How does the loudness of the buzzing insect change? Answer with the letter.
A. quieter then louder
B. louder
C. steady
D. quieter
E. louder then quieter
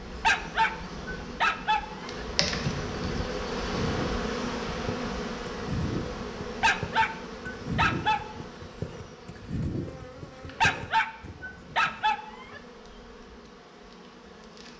D.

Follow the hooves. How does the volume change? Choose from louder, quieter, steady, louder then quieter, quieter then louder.
quieter.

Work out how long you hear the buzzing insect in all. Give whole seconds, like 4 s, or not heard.
15 s.